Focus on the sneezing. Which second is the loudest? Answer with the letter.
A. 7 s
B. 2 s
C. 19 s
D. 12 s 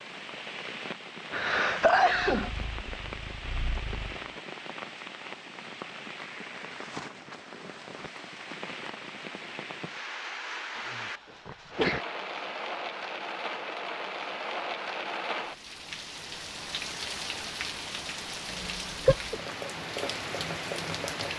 B.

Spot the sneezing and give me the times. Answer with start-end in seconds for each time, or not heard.
1.3-2.5, 10.8-12.1, 18.4-19.4.